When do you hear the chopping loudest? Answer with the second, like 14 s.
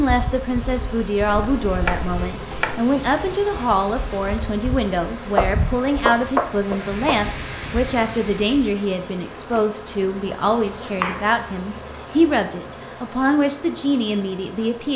6 s.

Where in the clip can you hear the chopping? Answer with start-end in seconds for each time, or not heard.
1.2-2.9, 5.3-7.2, 10.5-12.2.